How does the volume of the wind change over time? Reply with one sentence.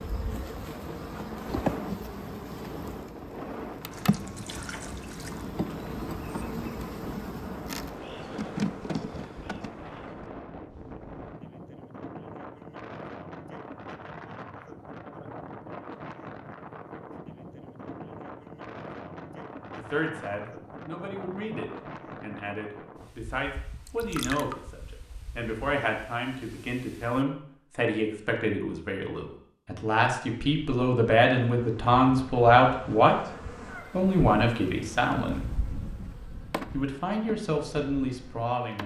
The volume of the wind goes down.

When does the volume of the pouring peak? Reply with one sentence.
The loudest moment of the pouring is at 24 seconds.